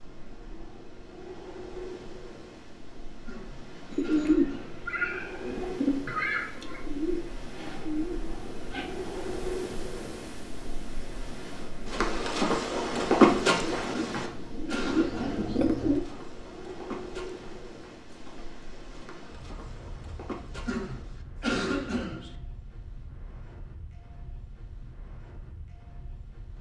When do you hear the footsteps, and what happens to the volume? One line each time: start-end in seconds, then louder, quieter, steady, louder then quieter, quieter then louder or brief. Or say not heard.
11.8-21.2 quieter then louder.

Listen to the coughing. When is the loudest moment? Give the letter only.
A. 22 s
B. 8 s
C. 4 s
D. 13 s
A.